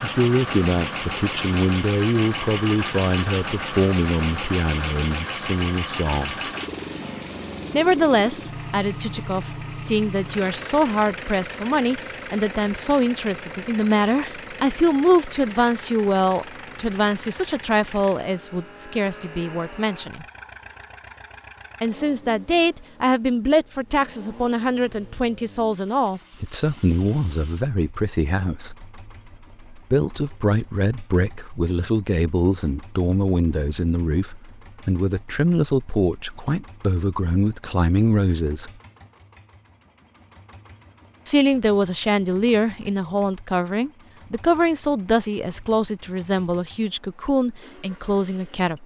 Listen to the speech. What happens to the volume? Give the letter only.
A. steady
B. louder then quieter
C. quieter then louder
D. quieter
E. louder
A.